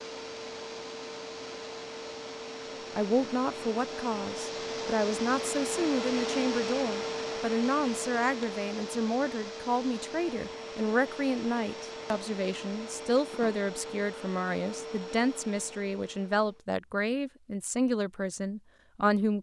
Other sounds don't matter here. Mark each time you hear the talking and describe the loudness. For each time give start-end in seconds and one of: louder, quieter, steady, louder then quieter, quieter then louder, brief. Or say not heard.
3.0-19.3 steady.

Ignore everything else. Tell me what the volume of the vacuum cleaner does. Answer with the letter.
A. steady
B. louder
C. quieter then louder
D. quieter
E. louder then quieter
E.